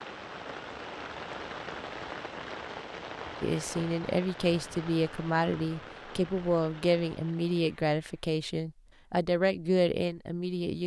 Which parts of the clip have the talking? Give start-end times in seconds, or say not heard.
3.4-10.8.